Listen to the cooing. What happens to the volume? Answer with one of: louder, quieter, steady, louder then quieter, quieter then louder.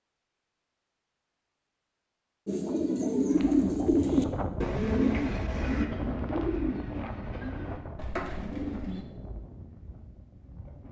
quieter.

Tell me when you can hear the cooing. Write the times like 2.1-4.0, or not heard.
2.5-9.1.